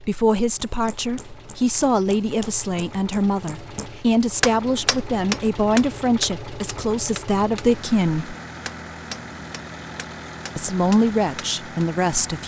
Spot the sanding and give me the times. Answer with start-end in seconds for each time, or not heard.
not heard.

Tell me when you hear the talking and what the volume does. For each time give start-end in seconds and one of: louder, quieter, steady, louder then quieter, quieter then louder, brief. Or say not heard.
0.0-8.3 steady
10.6-12.4 brief.